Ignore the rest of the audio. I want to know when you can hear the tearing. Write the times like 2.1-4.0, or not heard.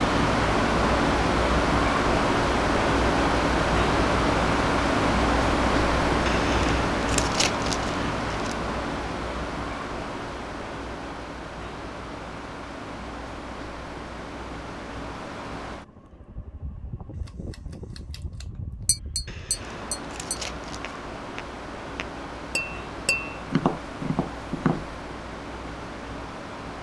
6.2-8.6, 19.2-20.9.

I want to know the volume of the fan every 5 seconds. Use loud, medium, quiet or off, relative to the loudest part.
loud, loud, quiet, quiet, quiet, quiet.